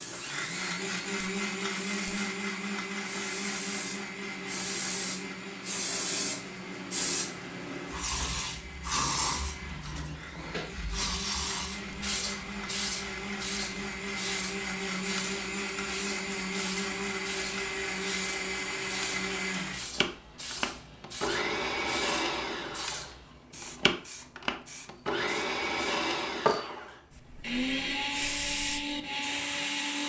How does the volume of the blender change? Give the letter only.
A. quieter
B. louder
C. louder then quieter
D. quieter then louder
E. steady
D.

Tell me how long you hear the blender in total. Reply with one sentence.
The blender can be heard for 30 seconds in total.